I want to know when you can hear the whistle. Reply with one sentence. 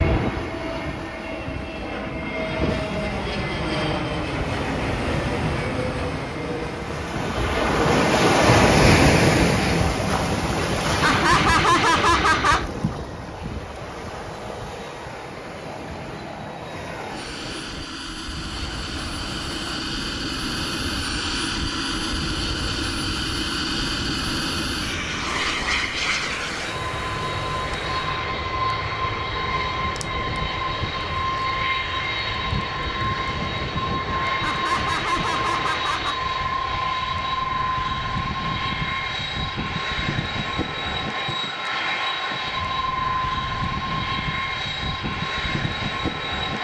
The whistle can't be heard in this clip.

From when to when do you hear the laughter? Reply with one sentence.
The laughter can be heard from 11.0 to 12.7 s and from 34.4 to 36.2 s.